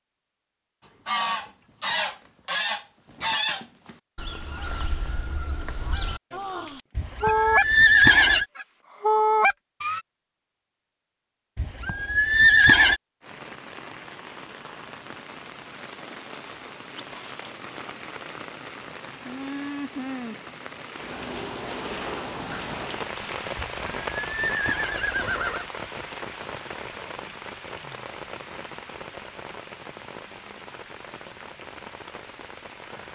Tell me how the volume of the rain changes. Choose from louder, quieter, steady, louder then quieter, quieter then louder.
louder then quieter.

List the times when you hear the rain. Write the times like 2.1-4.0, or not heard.
13.2-33.1.